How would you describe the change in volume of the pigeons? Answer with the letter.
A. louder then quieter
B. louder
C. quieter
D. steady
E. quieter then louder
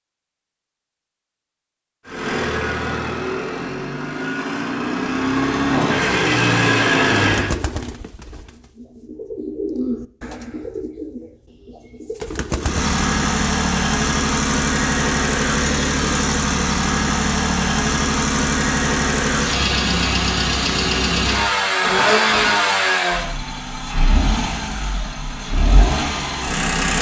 A.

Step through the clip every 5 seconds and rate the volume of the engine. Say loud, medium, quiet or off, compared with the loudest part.
medium, loud, loud, loud, loud, medium.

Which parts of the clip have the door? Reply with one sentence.
The door can't be heard in this clip.